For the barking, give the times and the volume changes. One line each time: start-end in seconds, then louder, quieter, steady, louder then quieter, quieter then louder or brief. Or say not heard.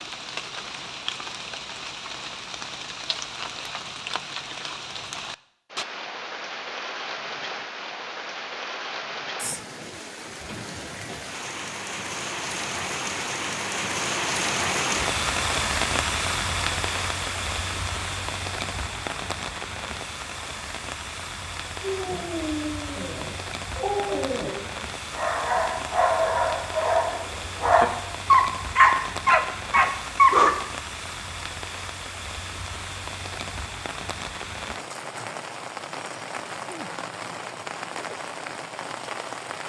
21.8-30.5 louder.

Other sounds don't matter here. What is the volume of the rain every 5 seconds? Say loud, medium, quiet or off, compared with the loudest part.
medium, medium, loud, loud, medium, medium, medium, medium.